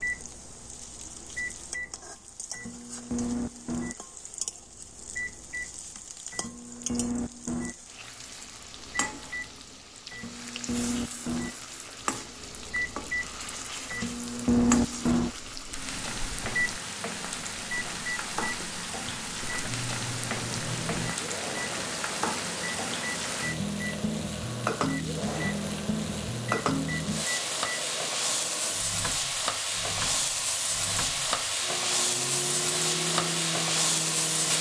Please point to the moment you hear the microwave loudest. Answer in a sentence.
The volume of the microwave peaks at 15 seconds.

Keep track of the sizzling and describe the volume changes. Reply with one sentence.
The volume of the sizzling goes up.